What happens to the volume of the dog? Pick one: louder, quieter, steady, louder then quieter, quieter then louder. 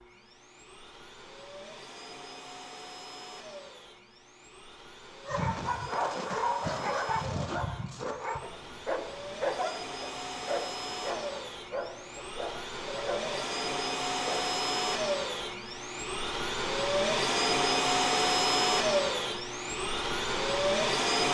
quieter.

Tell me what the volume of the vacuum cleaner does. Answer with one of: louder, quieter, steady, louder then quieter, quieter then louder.
louder.